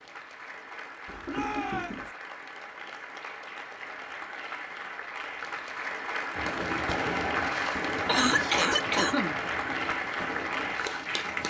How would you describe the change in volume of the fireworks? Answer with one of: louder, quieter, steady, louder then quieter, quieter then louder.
quieter.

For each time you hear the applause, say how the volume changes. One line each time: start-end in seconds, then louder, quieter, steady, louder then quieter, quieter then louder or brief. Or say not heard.
0.0-11.4 louder.